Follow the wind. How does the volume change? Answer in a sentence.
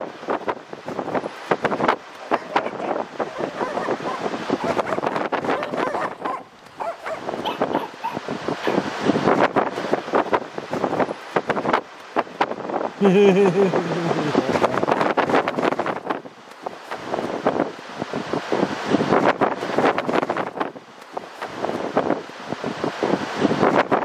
The volume of the wind stays about the same.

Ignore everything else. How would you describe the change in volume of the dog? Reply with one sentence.
The loudness of the dog stays about the same.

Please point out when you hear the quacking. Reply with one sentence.
You can't hear the quacking here.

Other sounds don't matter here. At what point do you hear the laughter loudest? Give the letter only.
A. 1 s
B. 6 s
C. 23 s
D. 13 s
D.